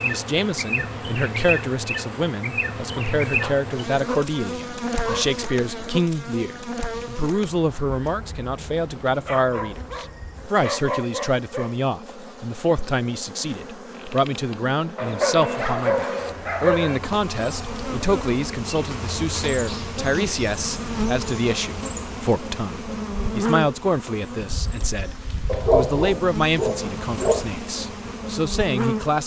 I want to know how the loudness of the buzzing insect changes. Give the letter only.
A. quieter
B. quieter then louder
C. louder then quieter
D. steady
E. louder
B.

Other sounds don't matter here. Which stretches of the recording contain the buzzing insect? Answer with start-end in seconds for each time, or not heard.
0.0-29.2.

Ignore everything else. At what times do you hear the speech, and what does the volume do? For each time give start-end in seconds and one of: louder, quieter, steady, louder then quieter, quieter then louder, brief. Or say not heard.
0.0-29.2 steady.